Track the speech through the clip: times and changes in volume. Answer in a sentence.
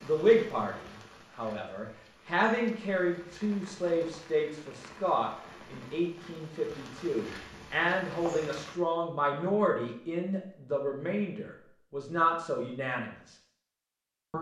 The speech can be heard from 0.0 to 13.3 s, at a steady volume.